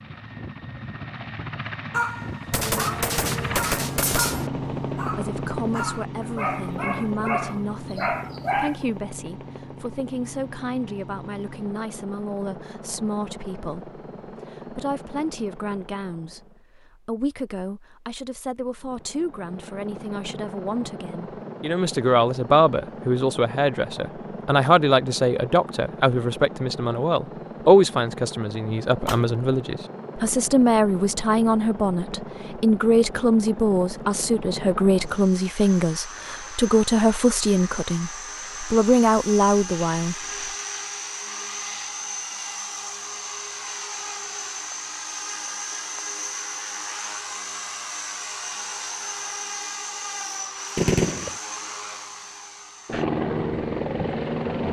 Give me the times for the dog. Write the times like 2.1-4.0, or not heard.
1.9-8.8.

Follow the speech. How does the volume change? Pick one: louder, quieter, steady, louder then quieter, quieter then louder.
louder.